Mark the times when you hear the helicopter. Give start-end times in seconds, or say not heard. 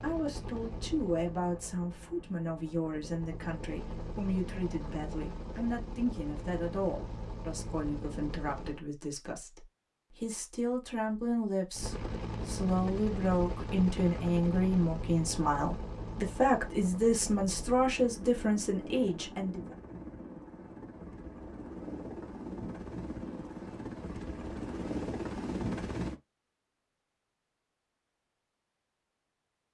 0.0-8.8, 11.8-26.1.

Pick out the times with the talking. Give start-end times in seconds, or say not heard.
0.0-19.8.